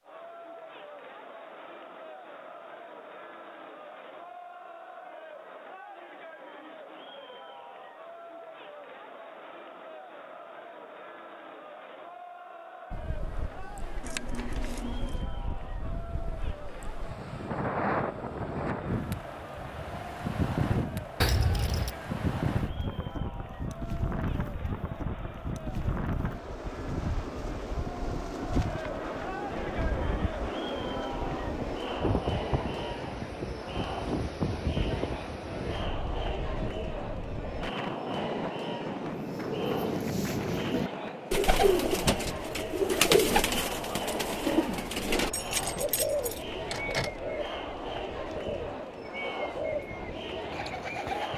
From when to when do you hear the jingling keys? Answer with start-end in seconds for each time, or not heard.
14.0-15.2, 21.2-21.9, 45.3-47.1.